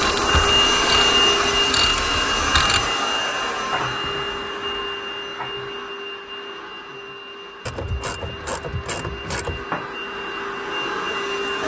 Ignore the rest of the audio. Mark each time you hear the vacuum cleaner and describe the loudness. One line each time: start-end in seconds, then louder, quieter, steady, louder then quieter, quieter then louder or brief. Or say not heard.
0.0-11.6 quieter then louder.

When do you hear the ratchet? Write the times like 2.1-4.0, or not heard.
0.0-3.0, 7.7-9.7.